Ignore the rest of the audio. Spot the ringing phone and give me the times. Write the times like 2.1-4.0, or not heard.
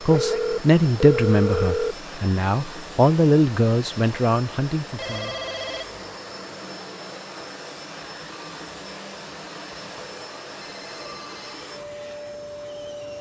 0.1-1.9, 5.0-6.2, 10.8-11.6.